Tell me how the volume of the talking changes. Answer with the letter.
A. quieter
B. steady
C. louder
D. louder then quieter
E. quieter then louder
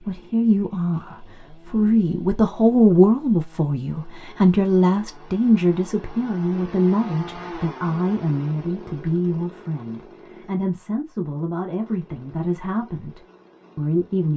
A.